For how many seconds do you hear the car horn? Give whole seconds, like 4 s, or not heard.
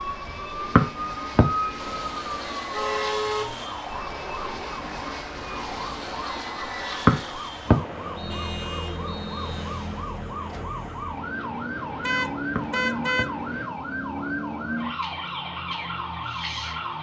4 s.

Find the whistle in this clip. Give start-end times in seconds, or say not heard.
0.8-1.4, 7.0-9.7, 12.6-13.2.